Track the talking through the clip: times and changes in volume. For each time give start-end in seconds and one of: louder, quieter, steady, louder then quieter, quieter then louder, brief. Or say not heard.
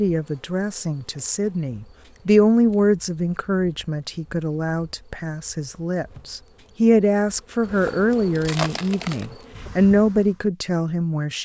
0.0-11.4 quieter then louder.